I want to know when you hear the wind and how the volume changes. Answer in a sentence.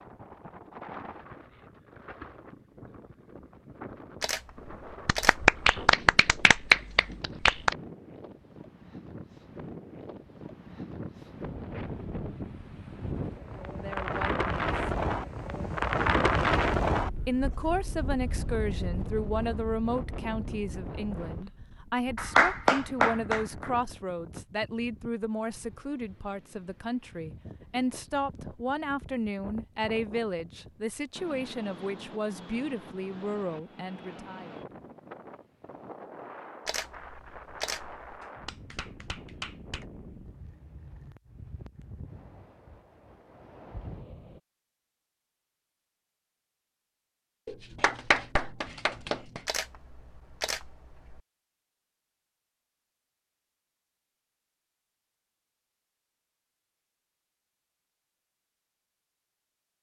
You can hear the wind from 0.0 to 44.4 s, getting louder then quieter.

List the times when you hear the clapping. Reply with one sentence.
You can hear the clapping from 5.0 to 7.8 s, from 22.1 to 23.7 s, from 38.2 to 39.9 s and from 47.5 to 49.4 s.